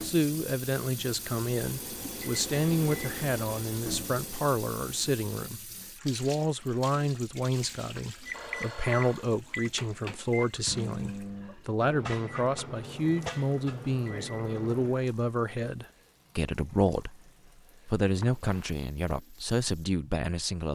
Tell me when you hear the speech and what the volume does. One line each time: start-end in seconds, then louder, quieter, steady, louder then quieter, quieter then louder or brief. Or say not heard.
0.0-17.2 steady
17.9-20.6 brief.